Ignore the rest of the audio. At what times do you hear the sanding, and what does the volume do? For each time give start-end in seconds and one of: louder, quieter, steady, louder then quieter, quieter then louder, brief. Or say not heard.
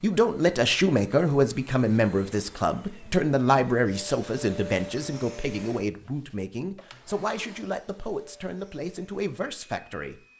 not heard.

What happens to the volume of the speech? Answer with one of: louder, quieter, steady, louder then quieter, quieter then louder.
quieter.